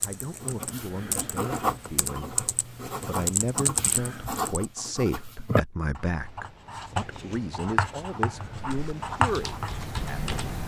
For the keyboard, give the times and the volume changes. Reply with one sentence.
The keyboard can be heard from 0.0 to 4.7 s, getting quieter then louder; and briefly from 8.5 to 10.6 s.